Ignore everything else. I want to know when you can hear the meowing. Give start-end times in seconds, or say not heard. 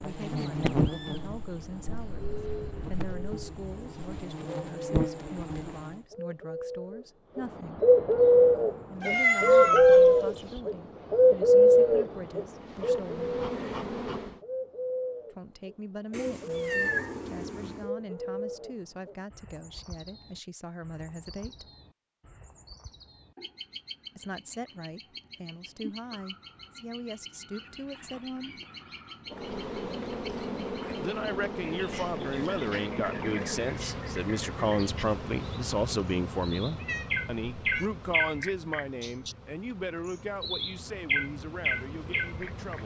9.0-10.6, 16.1-17.9, 36.8-37.9.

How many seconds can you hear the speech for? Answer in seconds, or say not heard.
35 s.